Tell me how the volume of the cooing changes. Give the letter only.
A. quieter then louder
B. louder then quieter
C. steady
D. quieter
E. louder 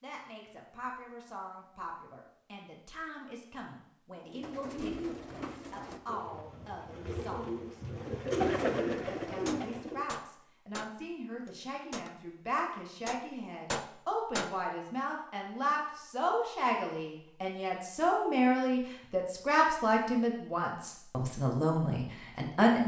A.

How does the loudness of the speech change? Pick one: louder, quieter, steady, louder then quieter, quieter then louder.
louder.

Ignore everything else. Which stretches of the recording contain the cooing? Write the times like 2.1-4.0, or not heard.
4.2-10.1.